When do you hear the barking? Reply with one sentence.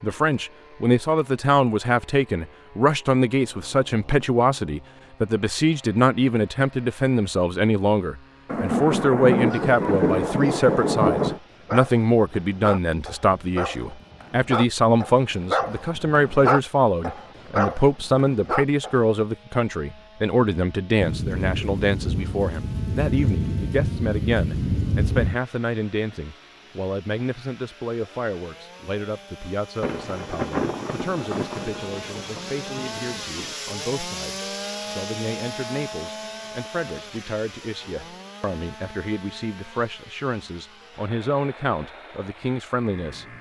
The barking can be heard from 9.4 to 19.1 s.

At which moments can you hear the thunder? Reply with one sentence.
The thunder can be heard from 8.4 to 11.4 s, from 21.0 to 25.4 s and from 29.8 to 33.5 s.